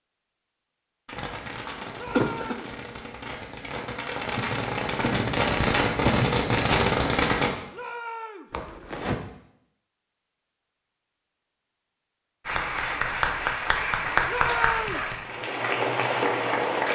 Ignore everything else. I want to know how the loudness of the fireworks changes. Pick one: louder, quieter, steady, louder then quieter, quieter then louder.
louder.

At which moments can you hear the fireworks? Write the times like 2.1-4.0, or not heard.
1.1-7.5.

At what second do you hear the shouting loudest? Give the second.
15 s.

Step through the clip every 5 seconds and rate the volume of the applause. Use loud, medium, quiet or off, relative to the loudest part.
off, off, loud, loud.